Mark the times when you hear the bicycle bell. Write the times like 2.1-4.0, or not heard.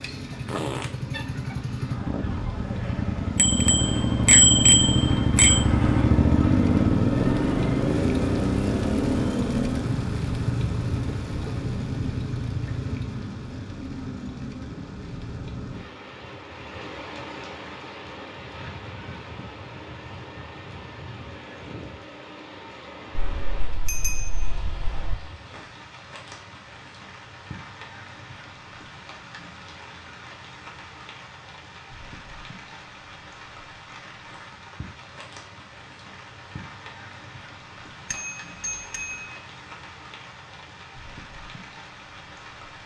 3.4-5.7, 23.1-25.1, 38.1-39.4.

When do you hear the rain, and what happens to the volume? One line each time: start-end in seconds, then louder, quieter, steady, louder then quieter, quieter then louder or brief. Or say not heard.
0.0-42.8 quieter.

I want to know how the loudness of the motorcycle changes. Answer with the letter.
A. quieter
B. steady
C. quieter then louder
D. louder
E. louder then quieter
E.